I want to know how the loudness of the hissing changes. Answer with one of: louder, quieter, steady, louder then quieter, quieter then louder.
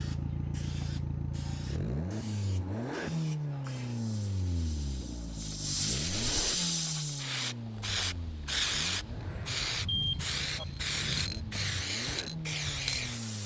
louder.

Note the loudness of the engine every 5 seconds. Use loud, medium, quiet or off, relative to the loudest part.
loud, medium, medium.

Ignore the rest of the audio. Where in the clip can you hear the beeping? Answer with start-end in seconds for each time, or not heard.
9.8-10.7.